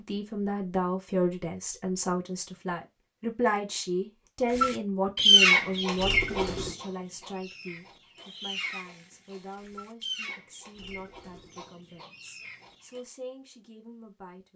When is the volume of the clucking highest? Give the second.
5 s.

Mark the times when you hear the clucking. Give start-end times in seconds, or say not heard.
4.5-13.0.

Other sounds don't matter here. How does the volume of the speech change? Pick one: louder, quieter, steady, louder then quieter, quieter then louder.
quieter.